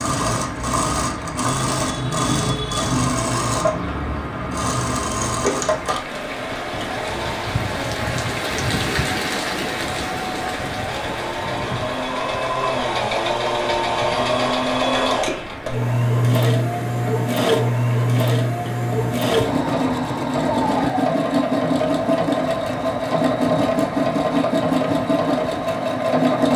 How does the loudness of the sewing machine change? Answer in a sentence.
The loudness of the sewing machine goes down, then up.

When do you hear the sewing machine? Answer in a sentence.
You can hear the sewing machine from 0.0 to 26.5 s.